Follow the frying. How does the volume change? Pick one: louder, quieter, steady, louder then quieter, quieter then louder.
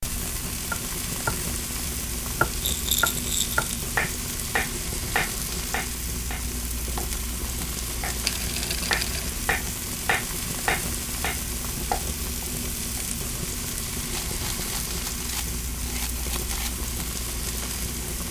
steady.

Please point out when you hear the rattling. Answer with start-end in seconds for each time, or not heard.
2.6-3.6, 8.2-9.3, 14.1-16.8.